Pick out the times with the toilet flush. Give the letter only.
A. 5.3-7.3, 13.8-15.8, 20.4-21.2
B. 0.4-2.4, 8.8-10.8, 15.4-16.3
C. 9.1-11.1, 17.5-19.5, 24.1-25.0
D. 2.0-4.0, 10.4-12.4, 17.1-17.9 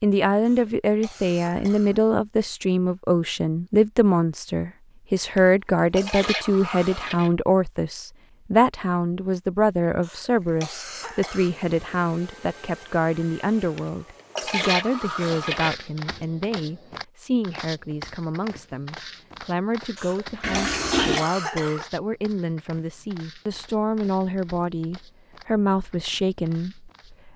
A.